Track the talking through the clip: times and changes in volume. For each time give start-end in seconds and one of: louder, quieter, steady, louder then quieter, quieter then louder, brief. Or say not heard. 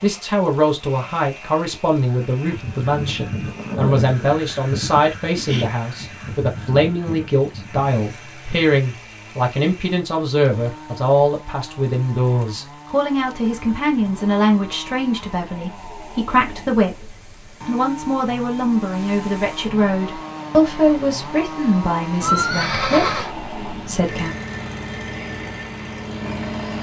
0.0-24.4 steady.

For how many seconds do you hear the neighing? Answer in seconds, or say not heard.
2 s.